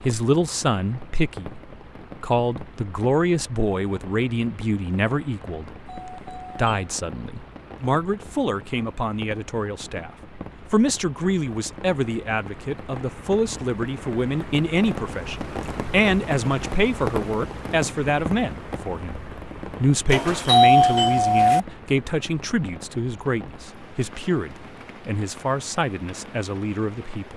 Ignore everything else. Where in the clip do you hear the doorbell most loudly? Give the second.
21 s.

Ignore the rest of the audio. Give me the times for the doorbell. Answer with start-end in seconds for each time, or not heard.
5.8-6.7, 20.1-21.6.